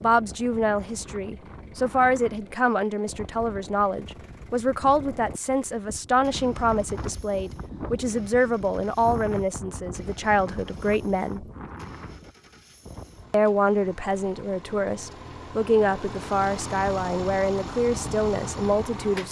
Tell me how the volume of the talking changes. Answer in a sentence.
The volume of the talking stays about the same.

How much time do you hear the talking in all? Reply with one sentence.
You can hear the talking for 17 seconds altogether.